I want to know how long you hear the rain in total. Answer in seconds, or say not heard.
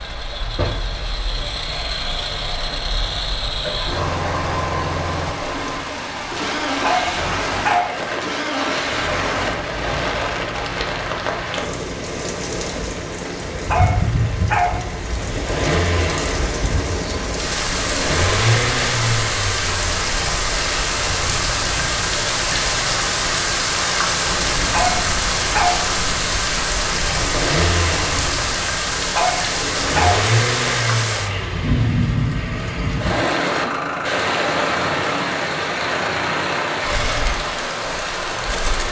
39 s.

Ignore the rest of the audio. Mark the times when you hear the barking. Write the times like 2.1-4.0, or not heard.
6.8-8.0, 13.7-14.8, 24.7-25.9, 29.1-30.2.